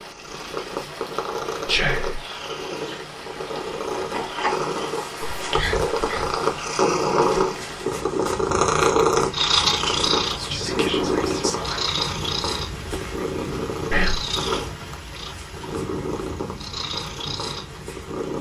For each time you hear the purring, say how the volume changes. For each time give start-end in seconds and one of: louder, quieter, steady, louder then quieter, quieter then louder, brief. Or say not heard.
0.0-18.3 louder then quieter.